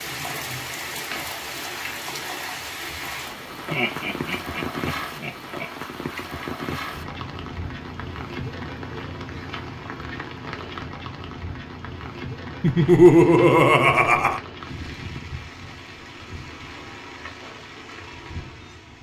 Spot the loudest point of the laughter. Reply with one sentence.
The volume of the laughter peaks at 13 seconds.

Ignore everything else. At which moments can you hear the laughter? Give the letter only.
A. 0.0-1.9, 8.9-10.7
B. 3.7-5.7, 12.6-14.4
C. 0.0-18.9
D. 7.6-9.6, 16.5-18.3
B.